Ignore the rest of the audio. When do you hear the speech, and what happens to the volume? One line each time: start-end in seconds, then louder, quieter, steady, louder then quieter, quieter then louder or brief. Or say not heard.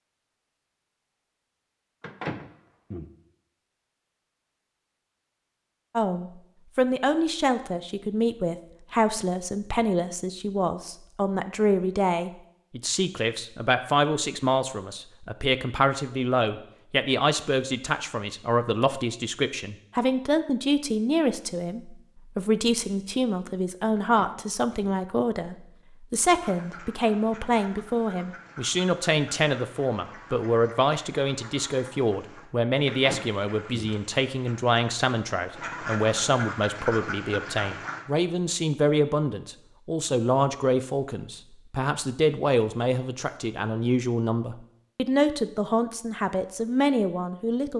6.0-47.7 steady.